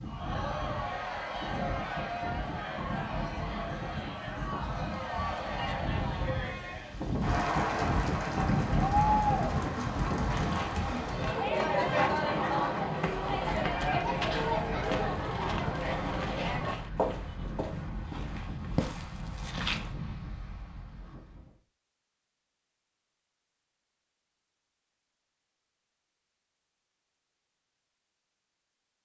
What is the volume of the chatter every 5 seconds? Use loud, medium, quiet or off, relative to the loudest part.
medium, loud, loud, loud, off, off.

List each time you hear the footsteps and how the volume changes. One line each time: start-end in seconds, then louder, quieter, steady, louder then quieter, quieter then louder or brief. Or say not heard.
10.3-19.9 steady.